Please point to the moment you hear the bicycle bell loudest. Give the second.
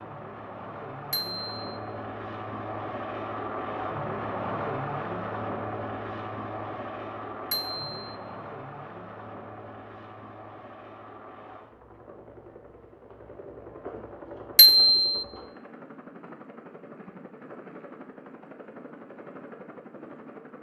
15 s.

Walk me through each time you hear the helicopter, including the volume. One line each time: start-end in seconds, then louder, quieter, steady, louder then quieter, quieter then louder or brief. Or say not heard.
0.0-20.5 quieter.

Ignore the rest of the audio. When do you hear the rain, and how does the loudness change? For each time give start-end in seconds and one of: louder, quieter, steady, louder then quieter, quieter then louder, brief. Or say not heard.
not heard.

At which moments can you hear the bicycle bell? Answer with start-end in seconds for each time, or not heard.
1.1-1.6, 7.5-8.0, 14.6-15.2.